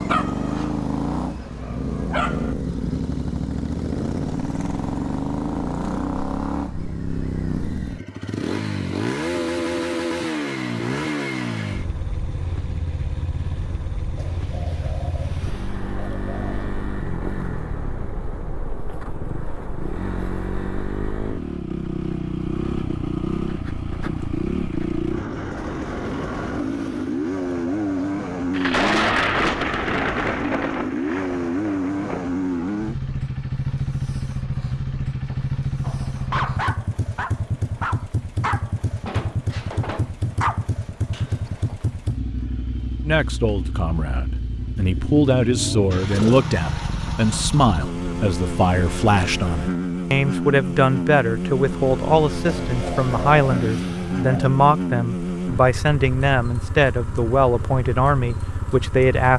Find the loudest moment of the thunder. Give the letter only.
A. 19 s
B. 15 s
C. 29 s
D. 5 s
C.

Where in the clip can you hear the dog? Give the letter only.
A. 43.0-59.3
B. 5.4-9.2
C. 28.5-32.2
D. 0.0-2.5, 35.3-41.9
D.